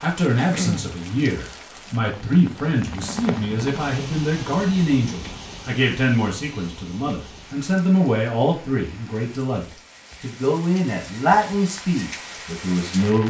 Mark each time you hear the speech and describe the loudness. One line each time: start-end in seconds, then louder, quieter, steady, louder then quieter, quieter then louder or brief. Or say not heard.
0.0-13.2 steady.